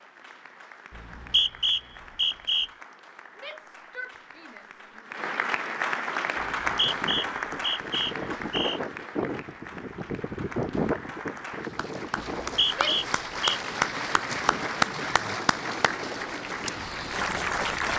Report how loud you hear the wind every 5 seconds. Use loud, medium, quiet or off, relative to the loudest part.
off, loud, loud, medium.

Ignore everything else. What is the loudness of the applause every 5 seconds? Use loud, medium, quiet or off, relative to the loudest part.
quiet, loud, loud, loud.